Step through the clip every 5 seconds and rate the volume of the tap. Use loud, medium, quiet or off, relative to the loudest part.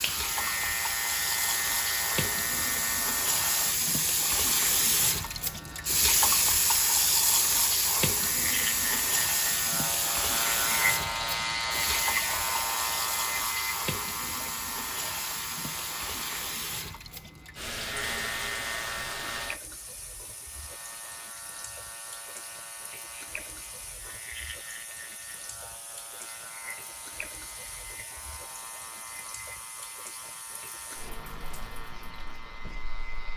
loud, loud, medium, medium, quiet, quiet, quiet.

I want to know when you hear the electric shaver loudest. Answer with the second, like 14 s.
11 s.